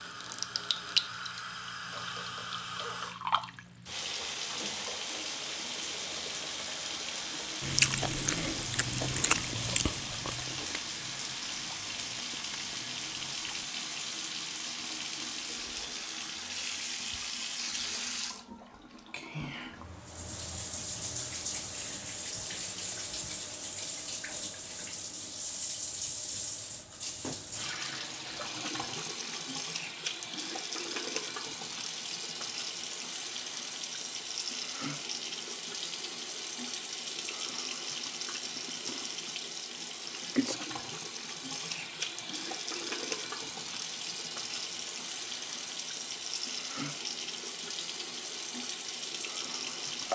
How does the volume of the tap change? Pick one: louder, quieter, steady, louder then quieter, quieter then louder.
steady.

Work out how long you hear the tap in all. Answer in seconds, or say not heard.
50 s.